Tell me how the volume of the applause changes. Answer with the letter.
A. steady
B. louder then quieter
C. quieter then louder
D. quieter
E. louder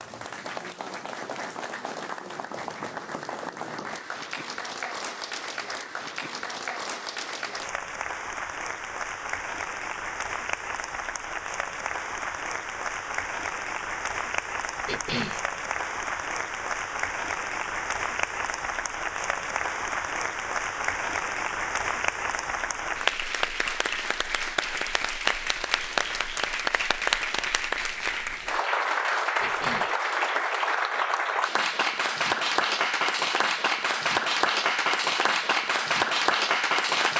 E.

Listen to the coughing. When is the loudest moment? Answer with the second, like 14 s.
15 s.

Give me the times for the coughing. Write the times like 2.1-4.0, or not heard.
14.8-15.4, 29.4-29.9.